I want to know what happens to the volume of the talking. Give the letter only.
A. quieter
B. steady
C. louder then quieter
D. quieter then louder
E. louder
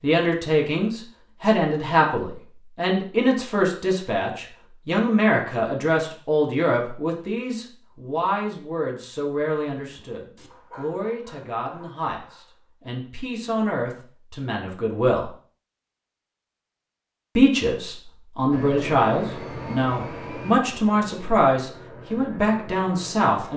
D.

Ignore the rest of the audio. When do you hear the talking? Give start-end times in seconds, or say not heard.
0.0-15.3, 17.4-23.5.